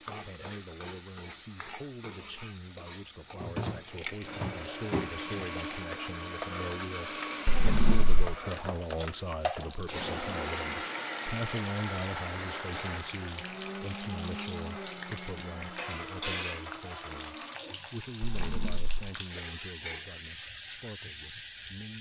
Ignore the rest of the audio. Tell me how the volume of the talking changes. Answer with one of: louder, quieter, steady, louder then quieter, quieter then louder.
louder then quieter.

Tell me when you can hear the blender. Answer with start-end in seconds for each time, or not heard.
4.2-17.6.